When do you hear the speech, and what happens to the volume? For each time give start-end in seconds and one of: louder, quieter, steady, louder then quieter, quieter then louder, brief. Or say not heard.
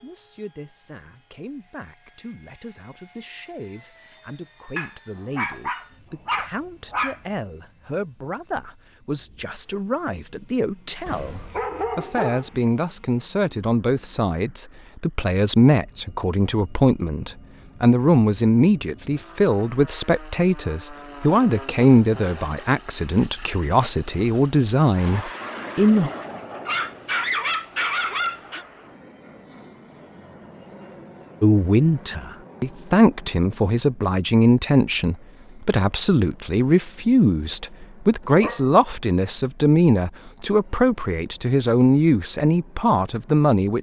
0.0-26.1 louder
31.4-43.7 steady.